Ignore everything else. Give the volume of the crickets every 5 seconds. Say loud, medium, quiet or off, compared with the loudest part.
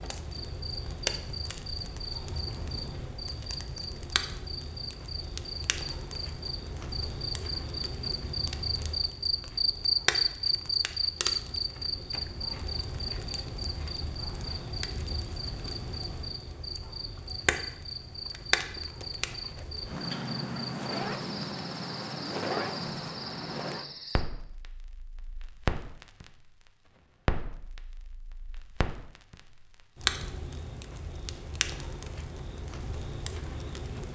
medium, loud, loud, medium, medium, off, off.